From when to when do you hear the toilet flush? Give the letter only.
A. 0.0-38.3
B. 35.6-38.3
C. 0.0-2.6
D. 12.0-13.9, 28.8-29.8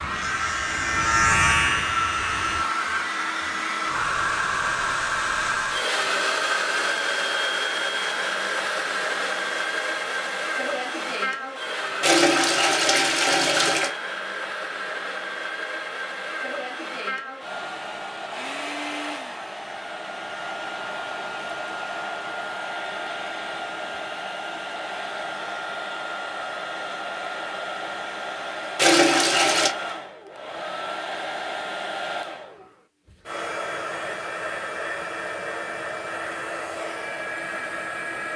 D.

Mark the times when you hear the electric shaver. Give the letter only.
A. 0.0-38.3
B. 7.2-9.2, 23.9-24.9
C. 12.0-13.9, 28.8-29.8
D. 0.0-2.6
D.